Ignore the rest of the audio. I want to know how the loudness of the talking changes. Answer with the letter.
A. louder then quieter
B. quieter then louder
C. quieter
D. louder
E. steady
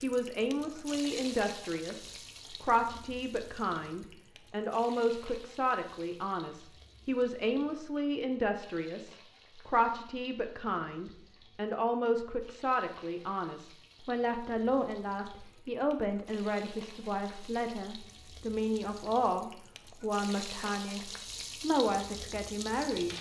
E.